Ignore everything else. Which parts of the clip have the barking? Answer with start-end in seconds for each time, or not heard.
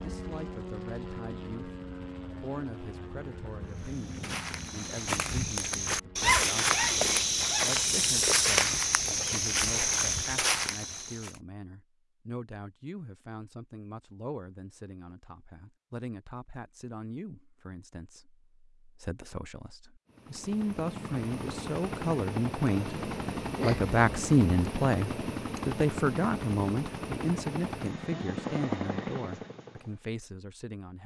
6.2-7.7.